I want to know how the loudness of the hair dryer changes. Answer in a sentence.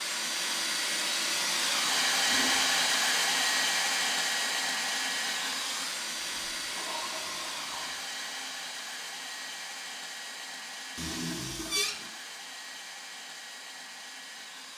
The volume of the hair dryer goes down.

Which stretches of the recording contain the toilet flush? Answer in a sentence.
You can hear the toilet flush from 2.3 to 2.8 s, from 6.2 to 8.0 s and from 10.9 to 12.1 s.